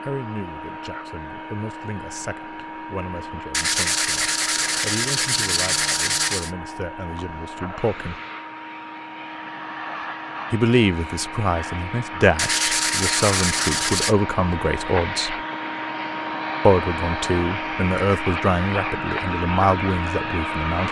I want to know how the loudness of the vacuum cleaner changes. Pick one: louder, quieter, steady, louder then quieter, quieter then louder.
louder.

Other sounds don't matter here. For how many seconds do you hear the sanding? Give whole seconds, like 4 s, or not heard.
5 s.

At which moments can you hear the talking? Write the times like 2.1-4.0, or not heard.
0.0-8.2, 10.5-15.4, 16.6-20.8.